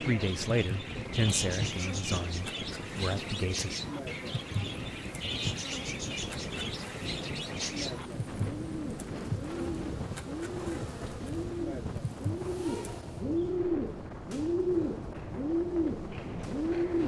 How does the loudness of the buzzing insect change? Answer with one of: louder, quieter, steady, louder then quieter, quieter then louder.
steady.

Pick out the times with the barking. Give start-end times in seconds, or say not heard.
not heard.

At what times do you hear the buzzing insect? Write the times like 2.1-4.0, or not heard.
0.0-13.1.